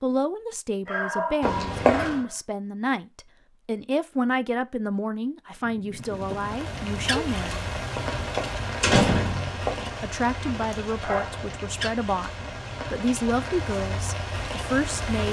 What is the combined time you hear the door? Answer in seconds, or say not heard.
3 s.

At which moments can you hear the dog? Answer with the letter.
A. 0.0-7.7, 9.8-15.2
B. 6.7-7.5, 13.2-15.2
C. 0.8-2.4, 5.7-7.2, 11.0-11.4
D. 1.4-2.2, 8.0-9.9
C.